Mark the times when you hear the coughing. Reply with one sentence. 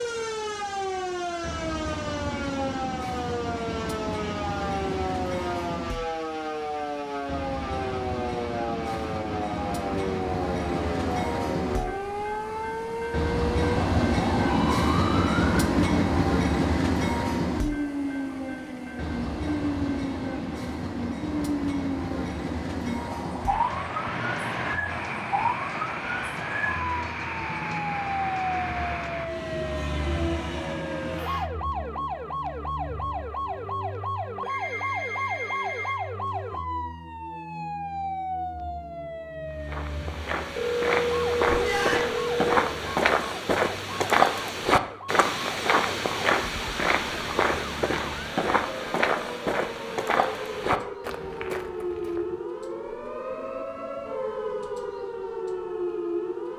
The coughing can't be heard in this clip.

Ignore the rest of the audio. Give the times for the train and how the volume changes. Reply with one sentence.
The train can be heard from 0.0 to 31.5 s, getting louder then quieter.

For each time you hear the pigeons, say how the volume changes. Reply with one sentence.
The pigeons can't be heard in this clip.